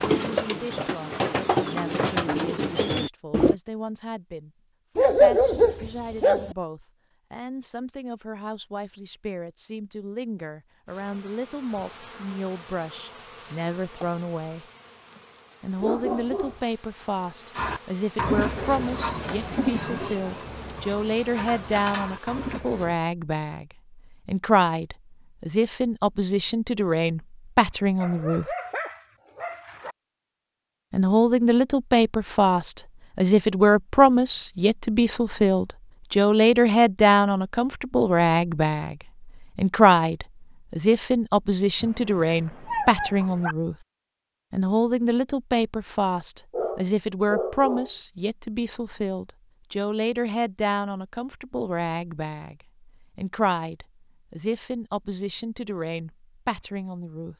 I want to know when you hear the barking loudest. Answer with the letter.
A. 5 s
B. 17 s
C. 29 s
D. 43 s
A.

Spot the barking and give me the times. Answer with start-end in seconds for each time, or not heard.
5.0-6.5, 15.8-16.6, 28.0-29.9, 41.8-43.5, 46.5-47.9.